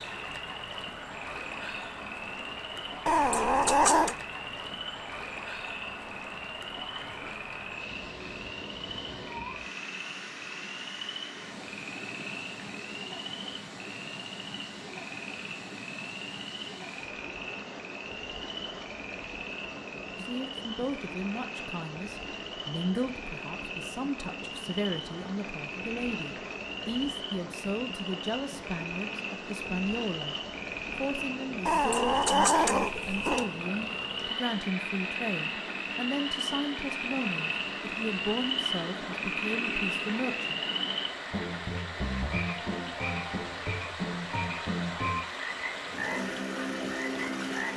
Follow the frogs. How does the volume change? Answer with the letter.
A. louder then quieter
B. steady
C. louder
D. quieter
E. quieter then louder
C.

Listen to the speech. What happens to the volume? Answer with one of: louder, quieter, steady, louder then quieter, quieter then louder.
steady.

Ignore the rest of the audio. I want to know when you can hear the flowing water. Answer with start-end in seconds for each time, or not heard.
0.0-47.7.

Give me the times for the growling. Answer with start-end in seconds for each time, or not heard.
3.0-4.2, 31.6-33.5.